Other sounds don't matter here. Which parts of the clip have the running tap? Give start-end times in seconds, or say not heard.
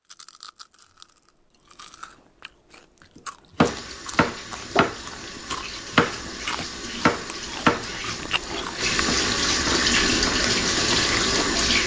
3.6-11.8.